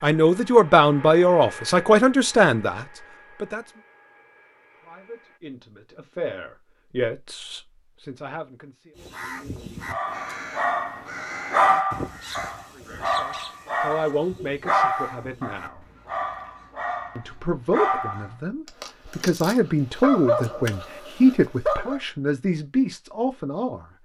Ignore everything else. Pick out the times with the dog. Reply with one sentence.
You can hear the dog from 9.9 to 22.0 s.